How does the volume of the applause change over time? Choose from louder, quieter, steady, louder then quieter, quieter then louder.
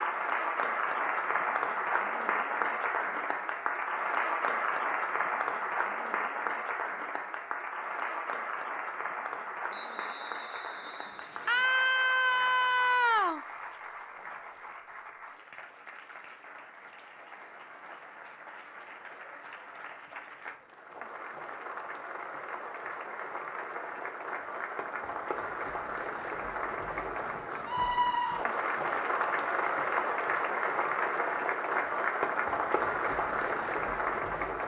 quieter then louder.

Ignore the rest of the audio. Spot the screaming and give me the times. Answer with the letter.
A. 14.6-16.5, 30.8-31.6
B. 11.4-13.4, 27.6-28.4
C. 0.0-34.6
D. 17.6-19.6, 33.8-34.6
B.